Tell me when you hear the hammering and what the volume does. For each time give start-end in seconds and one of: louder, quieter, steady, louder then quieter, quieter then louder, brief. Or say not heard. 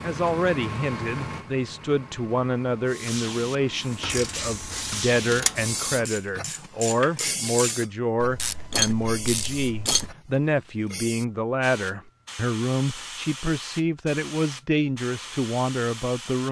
not heard.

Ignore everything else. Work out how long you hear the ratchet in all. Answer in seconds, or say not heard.
6 s.